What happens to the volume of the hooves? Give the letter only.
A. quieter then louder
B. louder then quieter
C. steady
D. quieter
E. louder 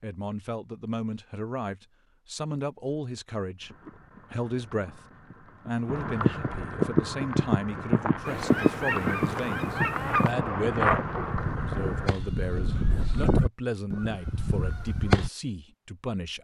E.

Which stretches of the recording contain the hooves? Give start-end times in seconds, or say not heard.
3.6-12.1.